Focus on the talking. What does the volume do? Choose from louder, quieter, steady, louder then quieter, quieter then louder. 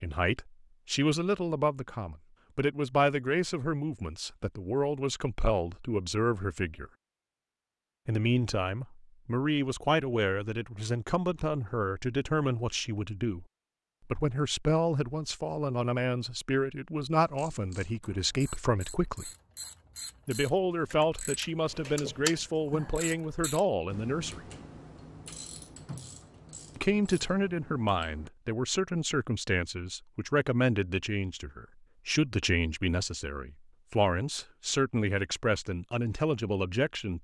steady.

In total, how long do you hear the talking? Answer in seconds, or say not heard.
32 s.